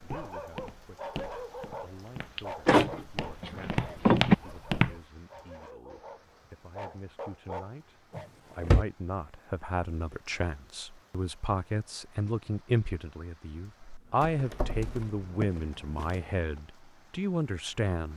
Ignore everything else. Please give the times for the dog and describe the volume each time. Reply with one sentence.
You can hear the dog from 0.0 to 8.3 s, getting quieter then louder.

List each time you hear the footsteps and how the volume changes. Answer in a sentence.
The footsteps can be heard from 0.0 to 5.0 s, getting quieter then louder; and briefly from 14.1 to 16.6 s.